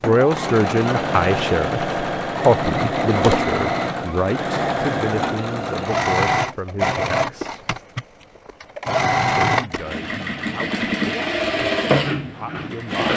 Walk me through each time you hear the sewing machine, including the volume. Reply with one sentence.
You can hear the sewing machine from 0.0 to 13.1 s, at a steady volume.